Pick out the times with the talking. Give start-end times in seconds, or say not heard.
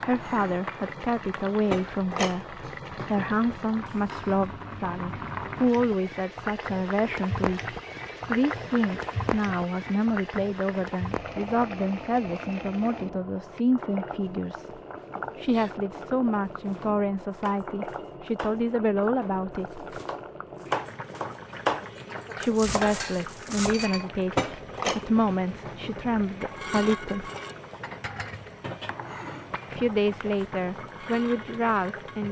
0.0-14.7, 15.3-19.8, 22.4-27.3, 29.7-32.2.